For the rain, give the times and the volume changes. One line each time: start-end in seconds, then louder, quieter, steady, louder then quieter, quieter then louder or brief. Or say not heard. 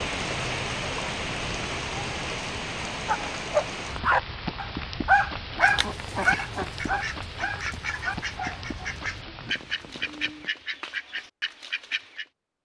0.0-10.5 quieter.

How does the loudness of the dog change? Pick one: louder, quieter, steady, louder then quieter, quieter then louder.
quieter.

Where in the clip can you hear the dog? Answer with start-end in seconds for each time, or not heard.
3.0-8.9.